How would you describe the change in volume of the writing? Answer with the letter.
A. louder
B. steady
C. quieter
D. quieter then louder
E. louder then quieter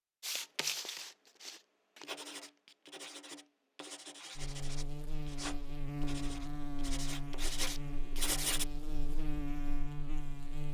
D.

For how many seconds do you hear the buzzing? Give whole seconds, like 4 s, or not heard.
6 s.